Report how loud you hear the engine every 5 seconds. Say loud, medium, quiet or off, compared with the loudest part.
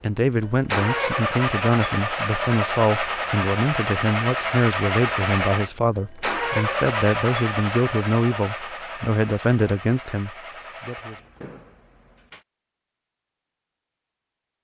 loud, loud, quiet.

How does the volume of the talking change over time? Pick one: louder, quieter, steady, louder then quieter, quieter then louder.
steady.